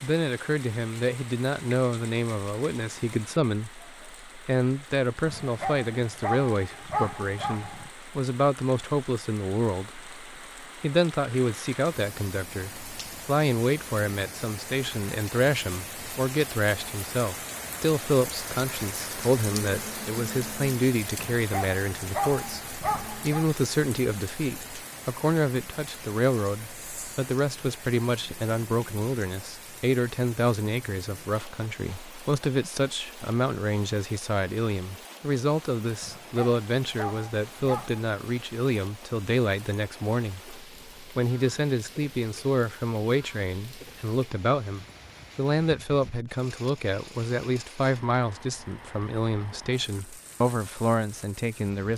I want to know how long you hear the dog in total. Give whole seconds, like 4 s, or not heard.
7 s.